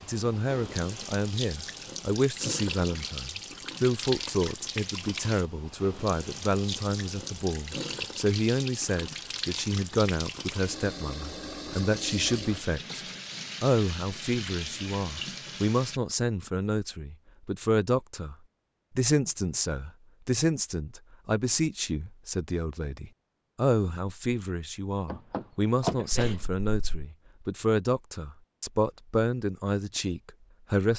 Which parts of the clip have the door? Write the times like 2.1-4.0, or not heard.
25.1-26.0.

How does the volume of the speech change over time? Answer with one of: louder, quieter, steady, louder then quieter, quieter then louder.
steady.